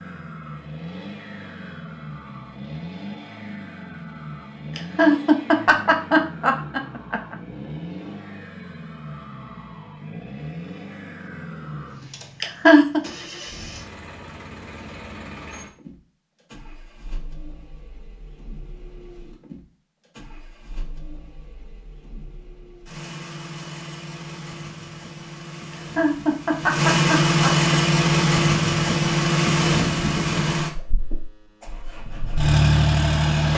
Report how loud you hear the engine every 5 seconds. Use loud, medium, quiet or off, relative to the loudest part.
quiet, quiet, quiet, quiet, quiet, loud, loud.